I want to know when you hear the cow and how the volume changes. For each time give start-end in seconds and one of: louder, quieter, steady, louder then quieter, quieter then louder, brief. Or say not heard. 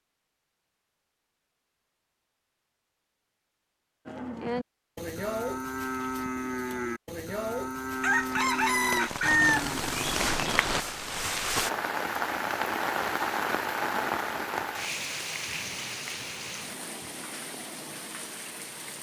4.0-10.8 steady.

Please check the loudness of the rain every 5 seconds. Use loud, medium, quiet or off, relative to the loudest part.
off, medium, loud, medium.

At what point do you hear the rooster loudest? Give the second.
9 s.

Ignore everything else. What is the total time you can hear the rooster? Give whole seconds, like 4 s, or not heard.
2 s.